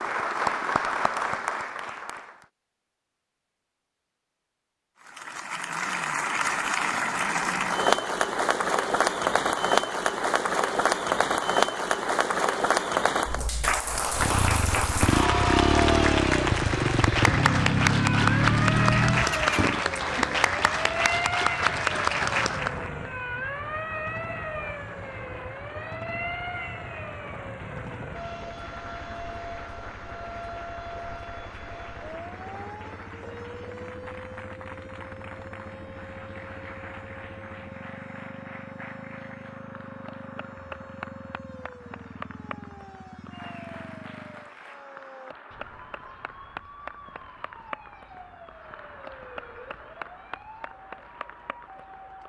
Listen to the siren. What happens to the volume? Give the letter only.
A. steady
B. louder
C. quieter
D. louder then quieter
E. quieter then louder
C.